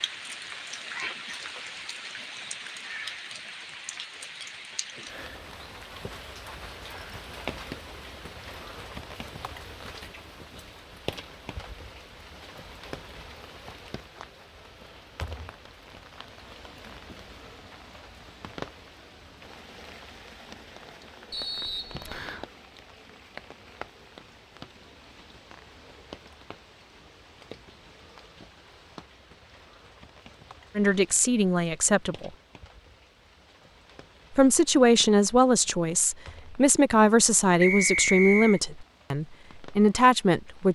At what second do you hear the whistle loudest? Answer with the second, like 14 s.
38 s.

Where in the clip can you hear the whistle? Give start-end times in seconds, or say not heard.
6.8-7.2, 21.3-22.4, 37.6-38.6.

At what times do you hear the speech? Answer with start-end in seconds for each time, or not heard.
30.8-32.3, 34.4-40.7.